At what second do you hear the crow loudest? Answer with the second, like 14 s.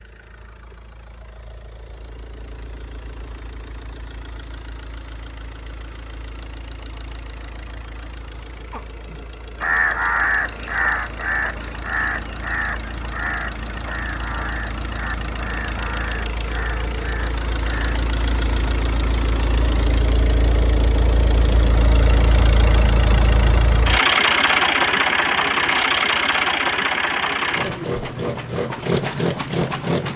10 s.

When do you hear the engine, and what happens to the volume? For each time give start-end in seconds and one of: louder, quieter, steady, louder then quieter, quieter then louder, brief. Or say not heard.
0.0-30.1 louder.